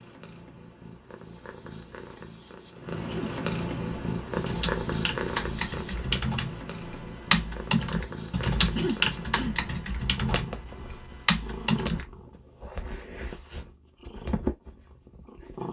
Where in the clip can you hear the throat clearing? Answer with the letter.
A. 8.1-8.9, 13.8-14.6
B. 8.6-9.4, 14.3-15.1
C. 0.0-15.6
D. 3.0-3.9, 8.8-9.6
D.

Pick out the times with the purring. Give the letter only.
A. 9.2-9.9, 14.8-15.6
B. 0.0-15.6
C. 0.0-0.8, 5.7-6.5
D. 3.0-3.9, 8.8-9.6
B.